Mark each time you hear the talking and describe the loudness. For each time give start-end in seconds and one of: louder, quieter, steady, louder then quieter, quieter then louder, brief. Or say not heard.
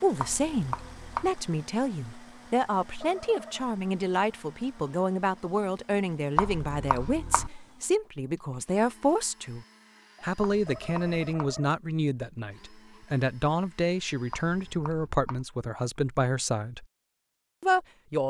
0.0-16.9 steady
17.6-18.2 brief.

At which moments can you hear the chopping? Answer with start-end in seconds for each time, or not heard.
0.1-1.3, 6.3-7.5, 10.4-11.6, 14.3-15.4.